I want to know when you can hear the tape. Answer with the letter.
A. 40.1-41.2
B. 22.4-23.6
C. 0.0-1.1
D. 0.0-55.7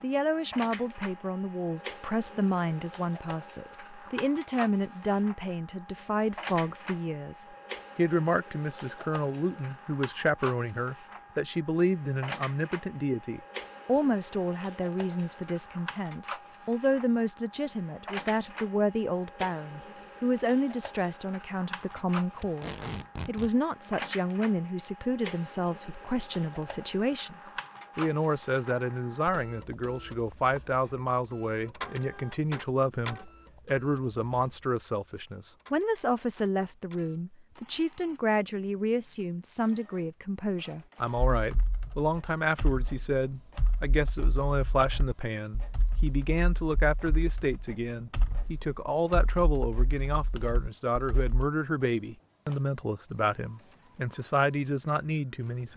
B.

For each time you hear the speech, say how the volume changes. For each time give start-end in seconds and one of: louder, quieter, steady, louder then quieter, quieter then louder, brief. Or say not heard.
0.0-55.7 steady.